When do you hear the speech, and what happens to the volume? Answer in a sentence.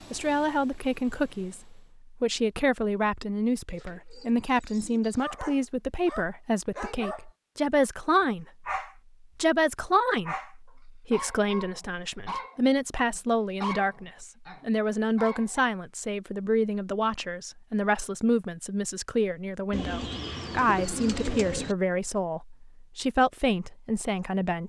The speech can be heard from 0.1 to 8.7 s, at a steady volume; and from 9.3 to 24.6 s, at a steady volume.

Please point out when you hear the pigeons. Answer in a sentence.
The pigeons can be heard from 3.6 to 5.2 s and from 19.7 to 21.8 s.